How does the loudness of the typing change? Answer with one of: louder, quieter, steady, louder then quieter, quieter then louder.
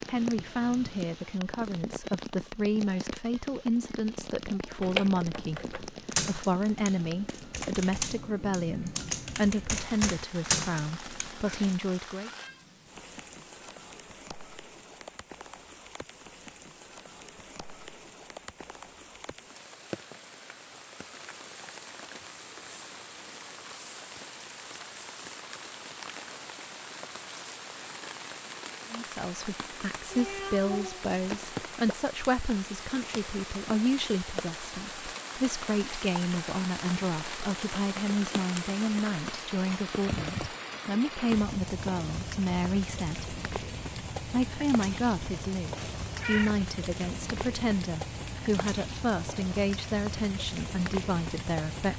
quieter then louder.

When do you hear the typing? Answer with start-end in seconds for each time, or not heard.
4.8-11.8.